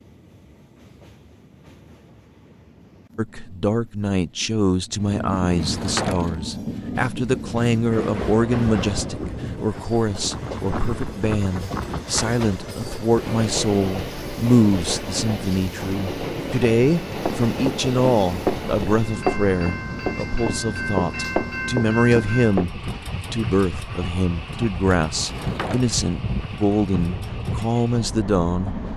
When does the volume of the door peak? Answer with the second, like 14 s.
6 s.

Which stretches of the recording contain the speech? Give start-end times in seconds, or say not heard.
3.1-28.8.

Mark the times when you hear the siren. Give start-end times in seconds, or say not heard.
not heard.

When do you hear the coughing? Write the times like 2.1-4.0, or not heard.
not heard.